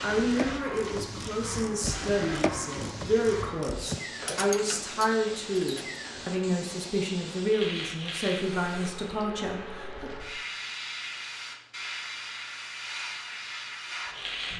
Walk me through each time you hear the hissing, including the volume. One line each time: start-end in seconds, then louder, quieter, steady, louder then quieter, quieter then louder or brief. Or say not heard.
0.0-14.5 steady.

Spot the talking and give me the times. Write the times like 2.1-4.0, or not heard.
0.0-10.1.